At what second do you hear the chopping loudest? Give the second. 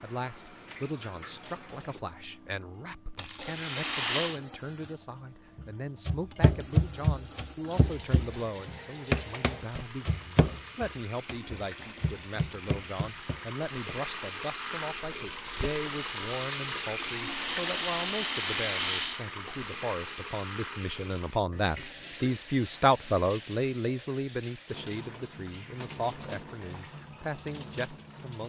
7 s.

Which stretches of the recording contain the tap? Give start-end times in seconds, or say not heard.
0.0-28.4.